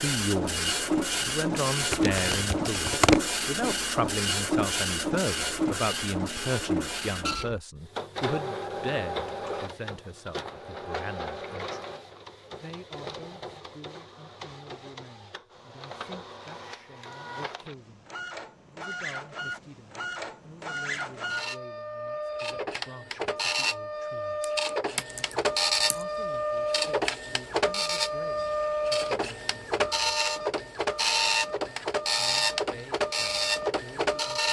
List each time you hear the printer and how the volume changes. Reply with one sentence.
You can hear the printer from 0.0 to 34.4 s, getting quieter then louder.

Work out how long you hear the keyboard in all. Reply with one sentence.
You can hear the keyboard for 3 seconds altogether.